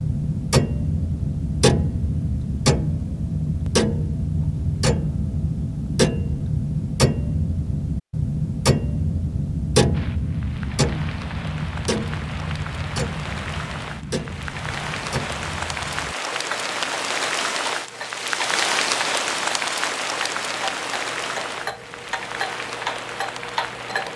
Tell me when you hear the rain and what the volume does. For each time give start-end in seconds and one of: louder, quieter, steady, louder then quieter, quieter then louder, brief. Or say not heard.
9.9-24.1 louder then quieter.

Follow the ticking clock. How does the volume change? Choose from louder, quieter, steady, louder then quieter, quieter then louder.
quieter.